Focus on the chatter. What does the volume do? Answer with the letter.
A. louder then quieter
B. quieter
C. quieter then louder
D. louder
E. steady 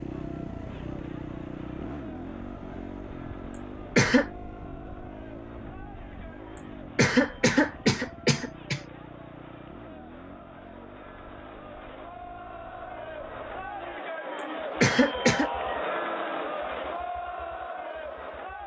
D.